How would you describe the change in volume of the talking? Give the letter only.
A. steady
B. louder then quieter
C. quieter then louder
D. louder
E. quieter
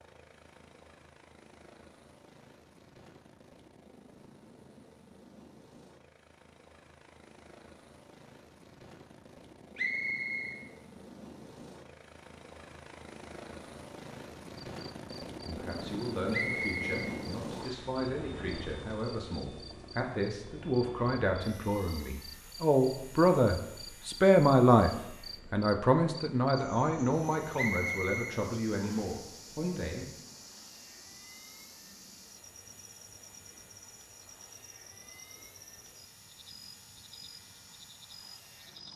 B.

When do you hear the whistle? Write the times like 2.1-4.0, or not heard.
9.8-10.6, 16.3-17.9, 27.6-29.1.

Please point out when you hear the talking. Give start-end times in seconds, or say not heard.
15.4-24.9, 25.5-30.1.